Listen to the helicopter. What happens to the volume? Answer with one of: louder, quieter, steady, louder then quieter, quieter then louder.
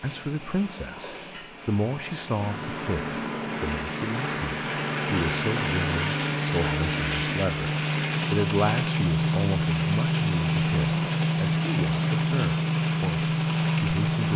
louder.